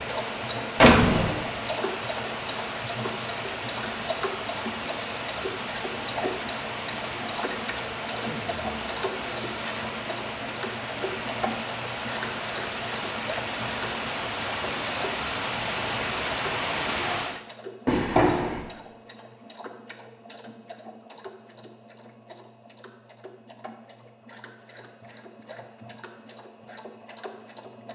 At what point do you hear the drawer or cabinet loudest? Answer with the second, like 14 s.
1 s.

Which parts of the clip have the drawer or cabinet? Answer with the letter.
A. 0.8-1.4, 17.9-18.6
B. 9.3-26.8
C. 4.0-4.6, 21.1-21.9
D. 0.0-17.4
A.